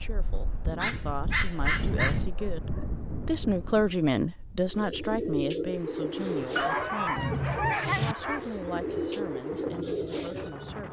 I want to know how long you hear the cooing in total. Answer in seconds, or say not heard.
6 s.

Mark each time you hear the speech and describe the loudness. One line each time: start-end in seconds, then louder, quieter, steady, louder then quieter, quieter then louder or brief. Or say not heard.
0.0-7.3 louder then quieter
8.0-10.8 brief.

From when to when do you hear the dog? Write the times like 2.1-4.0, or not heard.
0.8-2.2, 6.5-8.4.